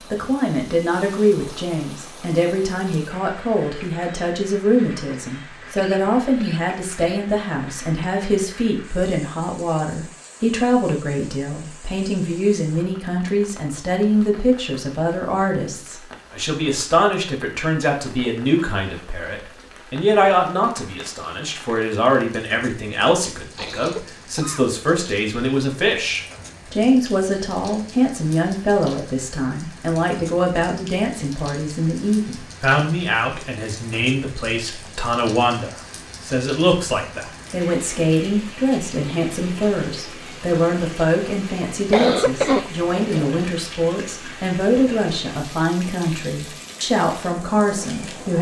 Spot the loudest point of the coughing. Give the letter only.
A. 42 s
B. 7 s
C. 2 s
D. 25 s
A.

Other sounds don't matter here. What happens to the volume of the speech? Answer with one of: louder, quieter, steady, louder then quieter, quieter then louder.
steady.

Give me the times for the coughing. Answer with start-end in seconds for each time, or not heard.
5.5-7.3, 23.6-24.6, 41.9-43.4.